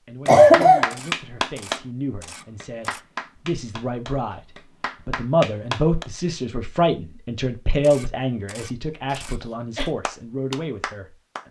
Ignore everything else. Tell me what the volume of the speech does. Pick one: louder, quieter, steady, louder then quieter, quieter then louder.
louder then quieter.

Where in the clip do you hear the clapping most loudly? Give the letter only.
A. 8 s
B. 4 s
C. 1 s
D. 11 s
C.